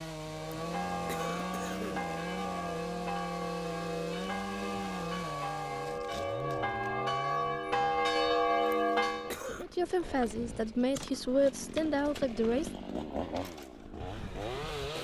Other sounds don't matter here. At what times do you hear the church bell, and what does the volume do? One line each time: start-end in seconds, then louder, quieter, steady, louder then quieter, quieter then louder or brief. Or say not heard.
0.2-9.4 louder.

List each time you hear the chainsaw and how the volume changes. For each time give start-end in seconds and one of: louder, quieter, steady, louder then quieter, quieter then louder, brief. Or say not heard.
0.0-14.9 quieter then louder.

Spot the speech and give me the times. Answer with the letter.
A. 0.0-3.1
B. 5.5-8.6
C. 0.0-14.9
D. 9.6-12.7
D.